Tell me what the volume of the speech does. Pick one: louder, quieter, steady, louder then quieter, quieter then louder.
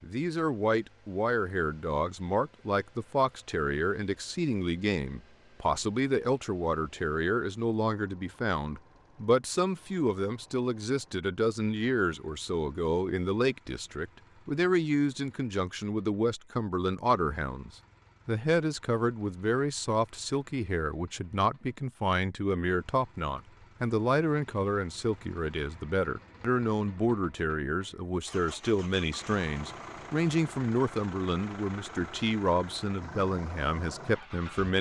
steady.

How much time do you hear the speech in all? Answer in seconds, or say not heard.
35 s.